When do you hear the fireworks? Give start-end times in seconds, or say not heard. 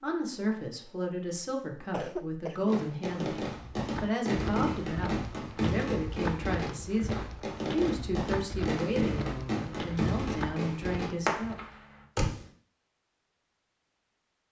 2.7-12.4.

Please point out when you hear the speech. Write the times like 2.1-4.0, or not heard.
0.0-11.6.